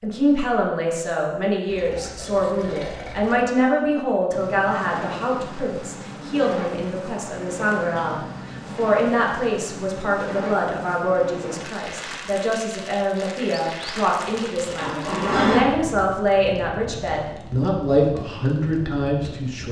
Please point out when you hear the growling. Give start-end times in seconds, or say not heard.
14.8-15.8.